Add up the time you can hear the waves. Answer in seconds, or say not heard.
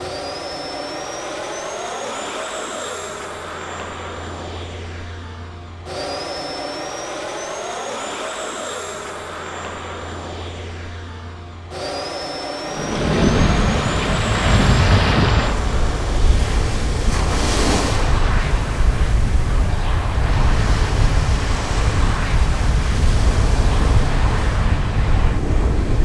13 s.